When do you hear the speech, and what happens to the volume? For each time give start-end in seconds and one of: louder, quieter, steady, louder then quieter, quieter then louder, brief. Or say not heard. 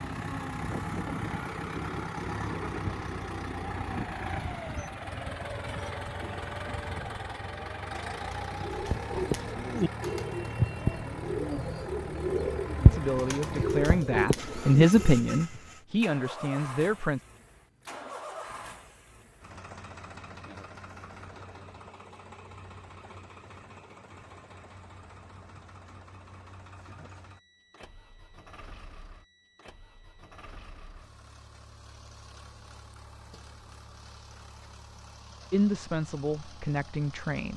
12.8-17.2 louder then quieter
35.5-37.5 brief.